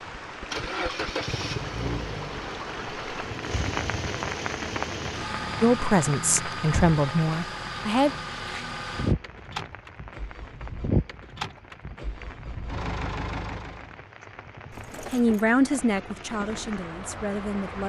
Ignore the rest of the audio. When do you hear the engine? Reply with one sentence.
You can hear the engine from 0.0 to 13.9 s.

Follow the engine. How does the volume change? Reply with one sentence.
The volume of the engine stays about the same.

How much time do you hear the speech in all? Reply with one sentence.
The speech can be heard for 5 seconds in total.